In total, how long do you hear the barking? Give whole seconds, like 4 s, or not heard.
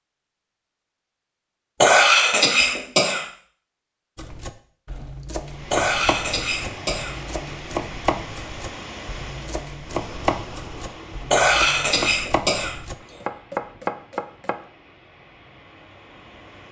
not heard.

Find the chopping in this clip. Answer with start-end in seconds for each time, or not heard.
4.2-14.6.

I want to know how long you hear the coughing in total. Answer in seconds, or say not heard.
4 s.